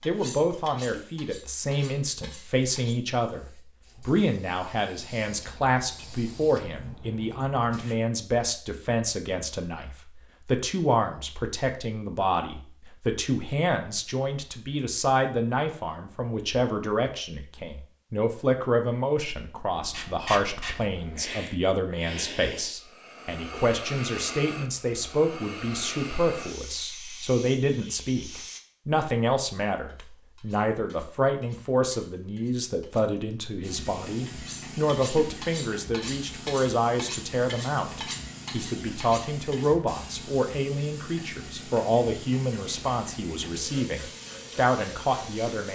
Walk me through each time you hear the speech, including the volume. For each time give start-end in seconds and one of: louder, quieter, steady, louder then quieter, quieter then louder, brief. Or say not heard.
0.1-45.6 steady.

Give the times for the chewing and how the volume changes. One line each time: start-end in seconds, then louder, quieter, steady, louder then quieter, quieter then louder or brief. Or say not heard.
not heard.